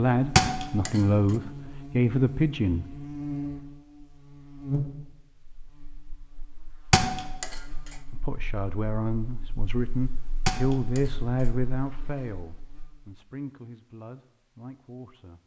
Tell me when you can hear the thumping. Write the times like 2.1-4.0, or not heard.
0.3-1.1, 6.9-7.7, 10.4-11.2.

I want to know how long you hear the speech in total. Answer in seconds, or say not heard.
10 s.